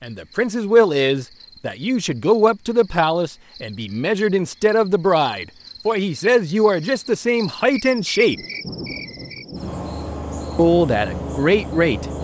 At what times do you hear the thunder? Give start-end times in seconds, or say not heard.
8.2-9.8.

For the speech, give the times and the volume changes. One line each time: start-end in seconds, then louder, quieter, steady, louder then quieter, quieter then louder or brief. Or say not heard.
0.0-8.4 steady
10.6-12.1 brief.